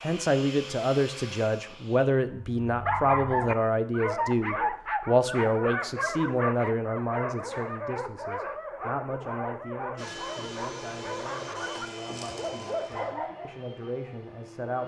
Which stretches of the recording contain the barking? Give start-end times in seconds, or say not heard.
2.4-13.7.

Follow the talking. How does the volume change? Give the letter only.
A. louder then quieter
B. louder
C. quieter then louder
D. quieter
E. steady
D.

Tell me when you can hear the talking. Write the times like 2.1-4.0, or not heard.
0.0-14.8.